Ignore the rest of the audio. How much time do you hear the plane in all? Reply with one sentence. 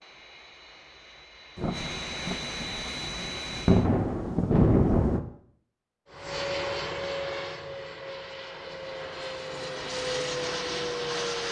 The plane can be heard for 9 seconds in total.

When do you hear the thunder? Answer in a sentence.
You can hear the thunder from 1.6 to 5.2 s.